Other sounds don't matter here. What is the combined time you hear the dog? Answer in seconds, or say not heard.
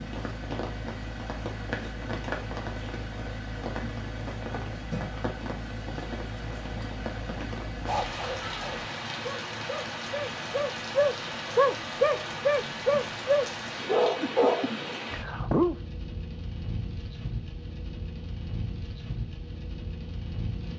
8 s.